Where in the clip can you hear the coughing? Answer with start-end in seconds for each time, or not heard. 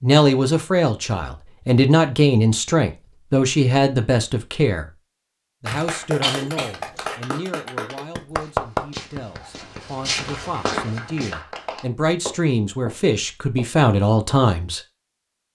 5.7-7.2.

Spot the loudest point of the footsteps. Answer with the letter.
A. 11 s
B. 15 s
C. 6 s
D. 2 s
A.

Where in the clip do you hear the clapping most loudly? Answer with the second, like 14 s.
9 s.